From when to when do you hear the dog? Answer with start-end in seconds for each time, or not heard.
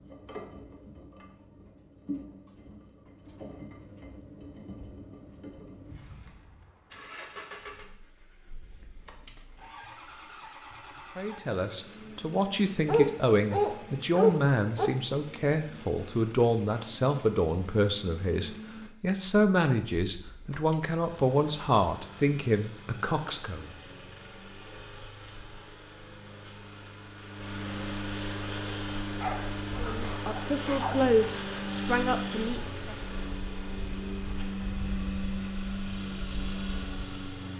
12.8-14.9, 29.1-30.9.